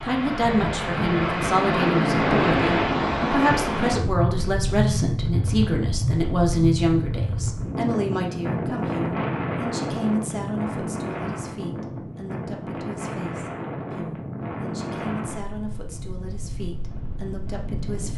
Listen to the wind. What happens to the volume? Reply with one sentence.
The loudness of the wind goes down.